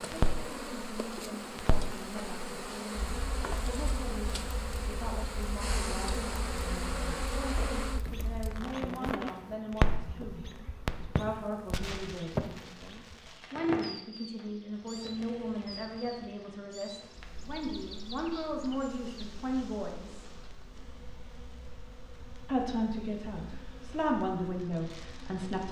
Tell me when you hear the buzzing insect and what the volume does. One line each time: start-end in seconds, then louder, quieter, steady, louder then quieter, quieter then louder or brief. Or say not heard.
0.0-25.6 quieter.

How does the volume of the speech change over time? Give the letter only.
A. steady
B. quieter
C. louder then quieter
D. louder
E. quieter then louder
D.